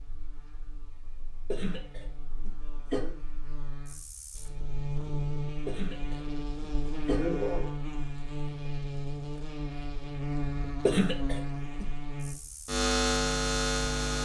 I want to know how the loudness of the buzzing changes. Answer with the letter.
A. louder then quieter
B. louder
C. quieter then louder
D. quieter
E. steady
B.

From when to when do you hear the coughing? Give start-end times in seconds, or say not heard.
1.5-3.1, 5.7-7.7, 10.8-11.8.